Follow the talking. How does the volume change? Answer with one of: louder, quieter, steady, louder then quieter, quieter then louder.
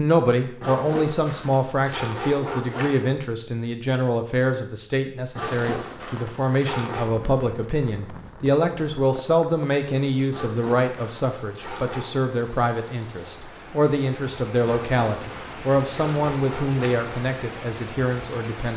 steady.